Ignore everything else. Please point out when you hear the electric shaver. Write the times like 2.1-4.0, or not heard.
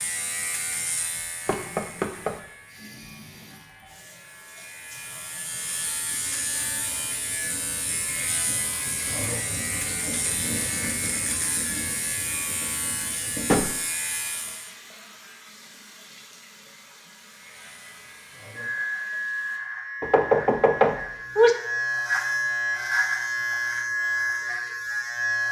0.0-14.7, 17.3-25.4.